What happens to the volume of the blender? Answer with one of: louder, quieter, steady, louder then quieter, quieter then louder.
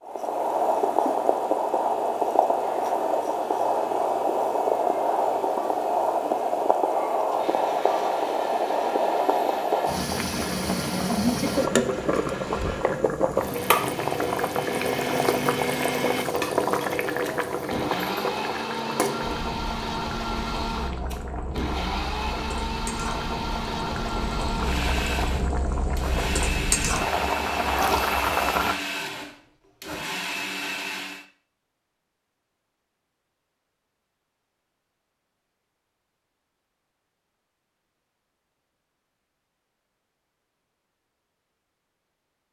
louder.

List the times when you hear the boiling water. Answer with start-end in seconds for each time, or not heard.
0.0-28.8.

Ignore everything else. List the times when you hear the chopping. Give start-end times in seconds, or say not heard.
not heard.